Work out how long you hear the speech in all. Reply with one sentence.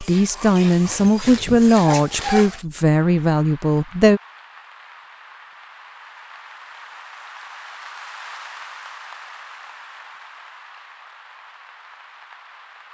The speech can be heard for 4 seconds in total.